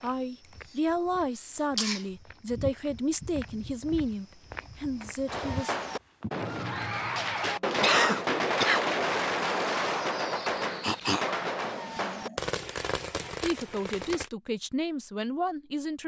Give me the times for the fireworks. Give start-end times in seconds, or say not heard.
5.2-14.3.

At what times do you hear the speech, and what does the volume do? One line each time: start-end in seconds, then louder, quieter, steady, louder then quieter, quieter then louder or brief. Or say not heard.
0.0-5.8 quieter
13.4-16.0 brief.